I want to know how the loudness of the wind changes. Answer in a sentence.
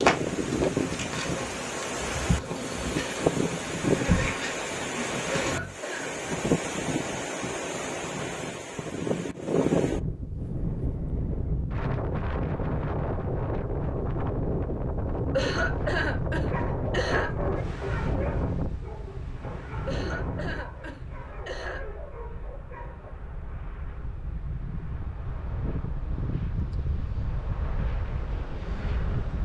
The volume of the wind goes down.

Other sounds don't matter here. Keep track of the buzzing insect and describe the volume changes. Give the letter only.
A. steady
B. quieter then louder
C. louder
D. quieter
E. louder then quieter
E.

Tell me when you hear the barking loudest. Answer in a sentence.
The loudest moment of the barking is at 17 seconds.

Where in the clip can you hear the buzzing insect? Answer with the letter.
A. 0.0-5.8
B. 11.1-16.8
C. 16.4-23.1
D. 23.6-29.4
A.